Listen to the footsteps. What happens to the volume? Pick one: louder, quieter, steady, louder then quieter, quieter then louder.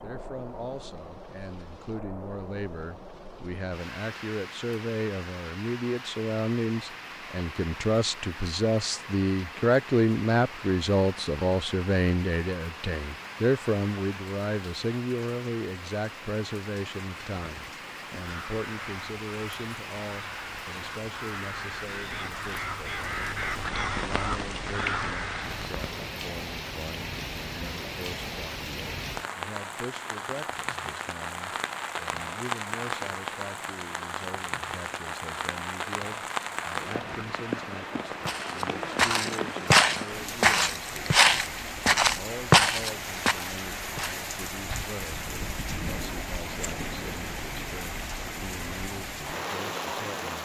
louder then quieter.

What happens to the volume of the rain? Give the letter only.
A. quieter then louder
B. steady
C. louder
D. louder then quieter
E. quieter
C.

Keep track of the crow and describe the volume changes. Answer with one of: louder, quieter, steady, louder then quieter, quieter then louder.
louder.